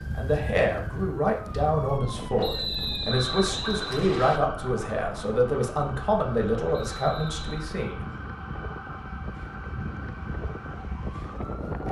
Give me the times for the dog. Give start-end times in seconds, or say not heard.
not heard.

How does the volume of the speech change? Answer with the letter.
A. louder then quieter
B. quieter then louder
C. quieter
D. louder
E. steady
E.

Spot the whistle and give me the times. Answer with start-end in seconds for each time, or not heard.
2.4-4.4, 6.7-7.7.